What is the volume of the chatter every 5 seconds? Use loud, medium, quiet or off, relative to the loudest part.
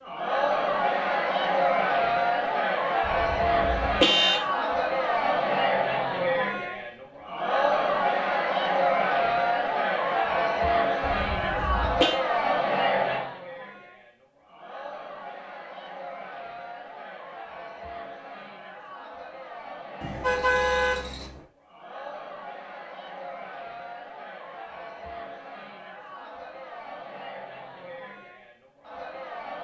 loud, loud, loud, quiet, quiet, quiet.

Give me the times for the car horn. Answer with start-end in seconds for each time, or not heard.
3.0-4.4, 11.0-12.2, 20.0-21.4.